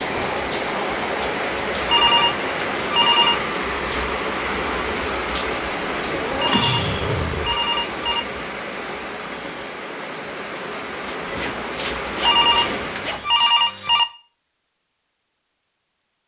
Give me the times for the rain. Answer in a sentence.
You can hear the rain from 0.0 to 13.3 s.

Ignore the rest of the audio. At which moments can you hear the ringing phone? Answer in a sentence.
You can hear the ringing phone from 1.9 to 3.5 s, from 6.3 to 8.2 s and from 12.2 to 14.1 s.